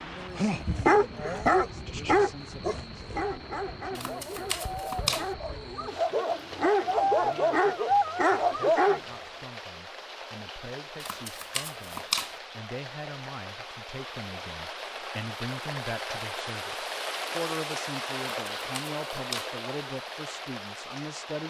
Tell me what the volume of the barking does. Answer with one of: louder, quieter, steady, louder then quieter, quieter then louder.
quieter then louder.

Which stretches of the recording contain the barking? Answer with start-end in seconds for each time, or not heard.
0.3-9.0.